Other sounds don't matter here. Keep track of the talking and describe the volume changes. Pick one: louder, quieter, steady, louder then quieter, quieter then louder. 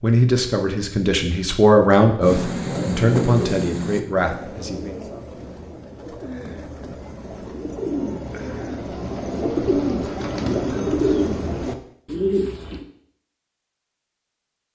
louder then quieter.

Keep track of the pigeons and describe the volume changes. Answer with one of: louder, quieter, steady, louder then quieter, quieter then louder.
quieter then louder.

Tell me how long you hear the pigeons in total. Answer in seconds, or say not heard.
11 s.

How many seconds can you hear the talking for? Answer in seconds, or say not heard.
5 s.